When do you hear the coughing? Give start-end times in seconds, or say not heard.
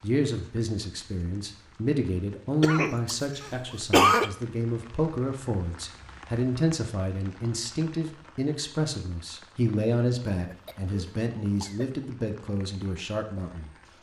2.6-4.3, 10.3-12.1.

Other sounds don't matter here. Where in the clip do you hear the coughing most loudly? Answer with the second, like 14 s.
4 s.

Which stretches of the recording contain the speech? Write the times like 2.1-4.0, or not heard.
0.0-13.8.